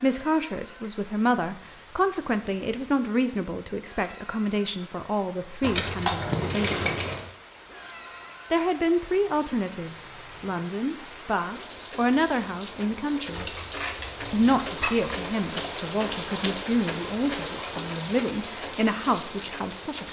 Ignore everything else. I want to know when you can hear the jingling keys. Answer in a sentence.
You can hear the jingling keys from 5.6 to 7.3 s and from 13.3 to 15.3 s.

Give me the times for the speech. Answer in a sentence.
You can hear the speech from 0.0 to 6.8 s, from 8.5 to 13.4 s and from 14.3 to 20.0 s.